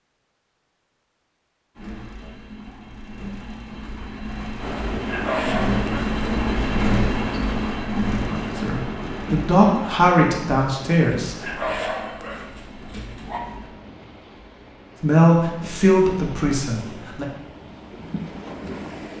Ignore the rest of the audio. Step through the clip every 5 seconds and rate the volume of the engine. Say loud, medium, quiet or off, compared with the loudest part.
medium, loud, quiet, off.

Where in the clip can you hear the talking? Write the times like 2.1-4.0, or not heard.
8.6-11.4, 15.0-17.2.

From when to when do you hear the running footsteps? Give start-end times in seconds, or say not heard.
not heard.